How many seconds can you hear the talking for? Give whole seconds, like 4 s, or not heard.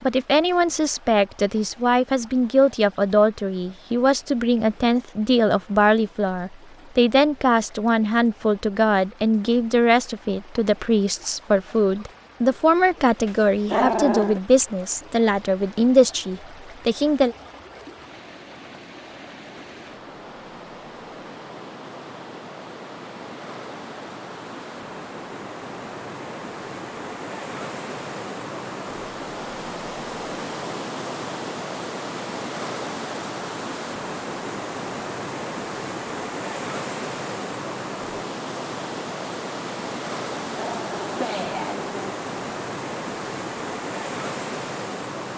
17 s.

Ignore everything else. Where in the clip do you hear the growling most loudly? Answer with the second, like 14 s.
14 s.